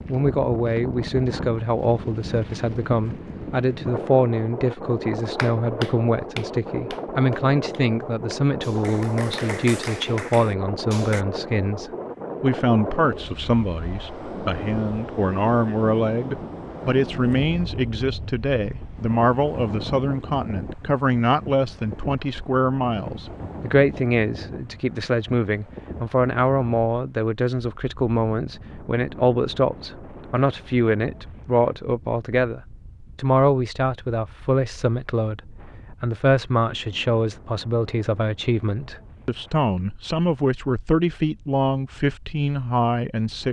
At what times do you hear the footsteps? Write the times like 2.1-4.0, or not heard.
not heard.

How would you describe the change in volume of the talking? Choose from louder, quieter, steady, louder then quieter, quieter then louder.
steady.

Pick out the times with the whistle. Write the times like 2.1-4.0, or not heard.
not heard.